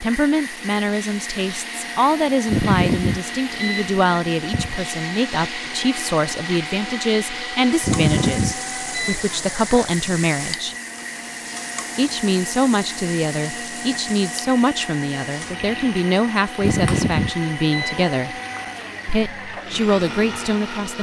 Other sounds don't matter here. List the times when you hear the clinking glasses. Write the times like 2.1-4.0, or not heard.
not heard.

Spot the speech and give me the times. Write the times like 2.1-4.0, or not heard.
0.0-10.8, 11.9-18.4, 19.1-20.9.